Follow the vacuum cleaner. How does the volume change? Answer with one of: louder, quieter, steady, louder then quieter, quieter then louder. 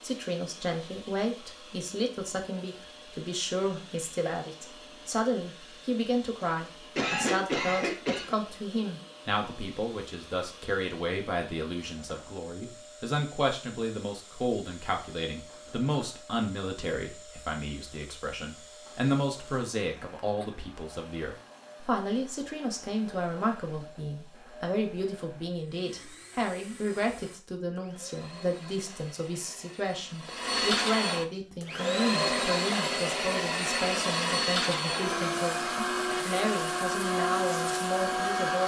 louder.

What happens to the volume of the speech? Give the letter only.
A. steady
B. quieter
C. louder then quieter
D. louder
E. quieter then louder
A.